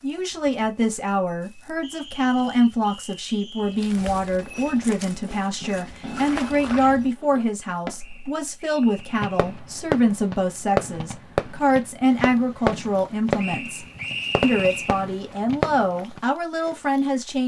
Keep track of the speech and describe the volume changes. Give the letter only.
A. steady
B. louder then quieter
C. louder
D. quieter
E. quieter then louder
A.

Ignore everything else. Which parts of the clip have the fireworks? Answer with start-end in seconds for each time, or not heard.
4.5-16.2.